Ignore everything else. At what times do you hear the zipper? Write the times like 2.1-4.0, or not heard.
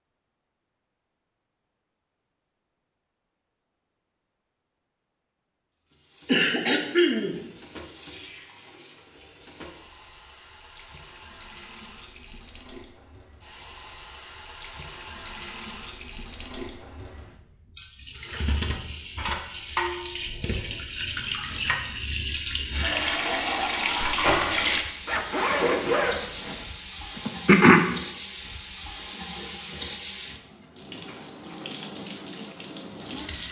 25.1-26.6.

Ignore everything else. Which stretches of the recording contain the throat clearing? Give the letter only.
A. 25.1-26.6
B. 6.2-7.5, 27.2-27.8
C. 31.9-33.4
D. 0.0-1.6
B.